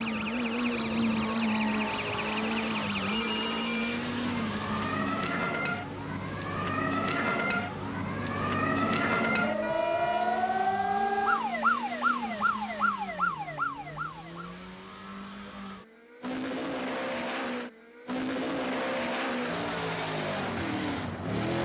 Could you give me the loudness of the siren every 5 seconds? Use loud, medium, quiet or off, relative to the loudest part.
medium, loud, loud, off, off.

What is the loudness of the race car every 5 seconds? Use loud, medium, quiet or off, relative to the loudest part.
loud, medium, medium, loud, loud.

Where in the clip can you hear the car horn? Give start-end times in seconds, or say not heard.
9.6-10.6.